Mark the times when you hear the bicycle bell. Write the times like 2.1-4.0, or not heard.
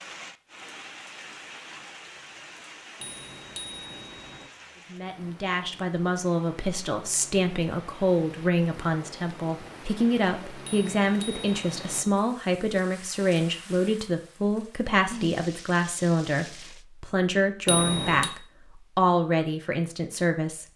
3.0-4.5, 10.7-12.2, 17.6-18.3.